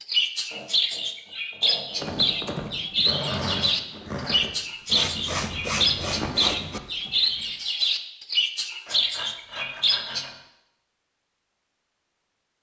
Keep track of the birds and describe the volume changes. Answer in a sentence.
The loudness of the birds stays about the same.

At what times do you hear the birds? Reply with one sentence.
The birds can be heard from 0.0 to 10.3 s.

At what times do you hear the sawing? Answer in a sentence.
The sawing can be heard from 0.5 to 2.5 s, from 4.9 to 6.8 s and from 8.8 to 10.4 s.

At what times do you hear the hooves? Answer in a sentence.
You can hear the hooves from 1.9 to 7.5 s.